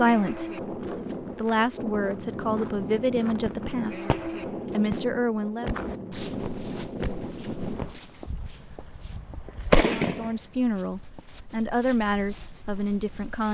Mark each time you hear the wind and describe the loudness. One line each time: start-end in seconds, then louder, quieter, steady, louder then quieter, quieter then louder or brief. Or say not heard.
0.0-13.3 quieter.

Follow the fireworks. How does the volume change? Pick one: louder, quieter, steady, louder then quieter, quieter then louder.
quieter then louder.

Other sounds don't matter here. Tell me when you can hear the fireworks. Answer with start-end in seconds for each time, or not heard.
3.5-10.3.